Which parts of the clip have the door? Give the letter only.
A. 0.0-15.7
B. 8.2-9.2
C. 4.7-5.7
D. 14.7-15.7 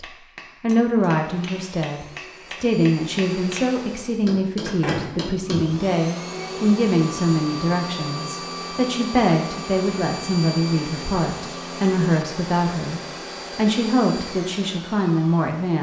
C.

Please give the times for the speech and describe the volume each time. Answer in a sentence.
You can hear the speech from 0.0 to 15.7 s, at a steady volume.